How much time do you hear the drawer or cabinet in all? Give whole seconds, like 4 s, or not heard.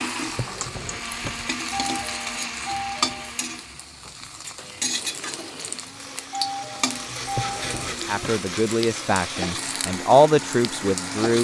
2 s.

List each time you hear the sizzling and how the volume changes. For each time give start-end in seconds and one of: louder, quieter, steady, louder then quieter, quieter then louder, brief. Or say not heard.
0.0-11.3 steady.